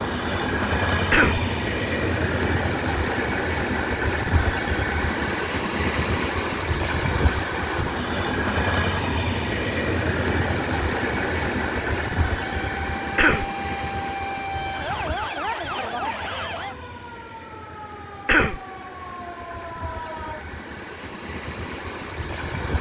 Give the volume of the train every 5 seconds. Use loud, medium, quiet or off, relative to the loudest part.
loud, loud, loud, quiet, medium.